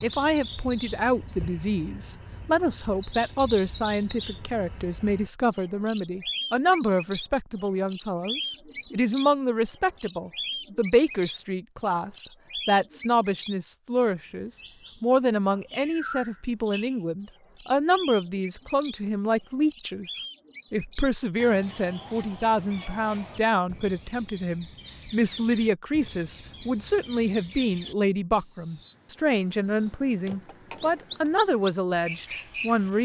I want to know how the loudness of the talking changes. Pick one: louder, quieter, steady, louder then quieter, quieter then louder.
steady.